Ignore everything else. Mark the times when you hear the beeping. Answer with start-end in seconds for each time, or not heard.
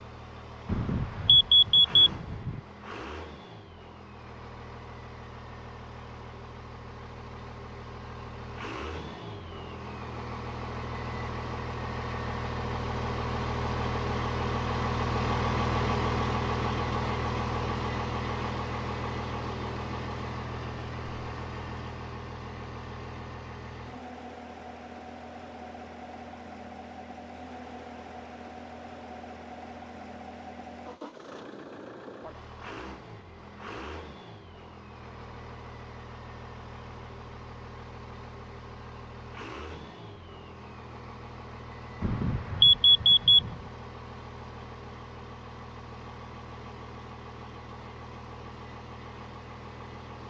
0.7-2.6, 42.0-43.5.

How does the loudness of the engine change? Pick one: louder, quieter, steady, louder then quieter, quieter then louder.
louder then quieter.